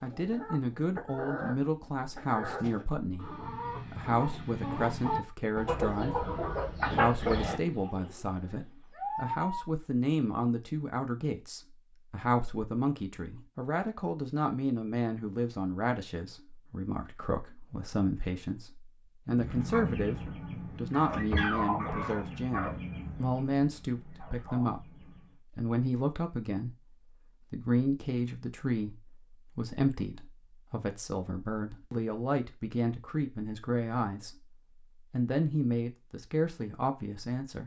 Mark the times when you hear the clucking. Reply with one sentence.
You can hear the clucking from 0.0 to 9.7 s and from 19.3 to 25.4 s.